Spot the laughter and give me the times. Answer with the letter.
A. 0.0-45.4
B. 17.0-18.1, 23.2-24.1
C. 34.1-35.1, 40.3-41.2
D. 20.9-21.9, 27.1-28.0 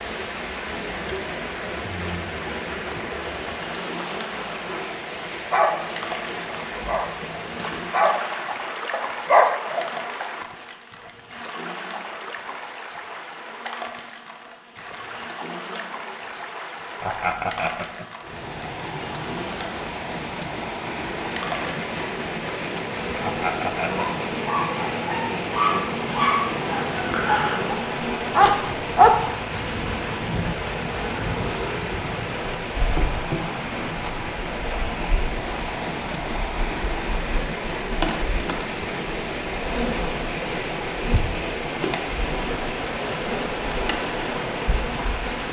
B.